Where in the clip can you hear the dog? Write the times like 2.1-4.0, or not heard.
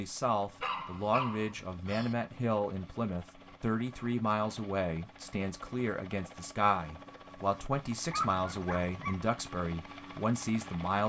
0.6-2.1, 8.1-9.2.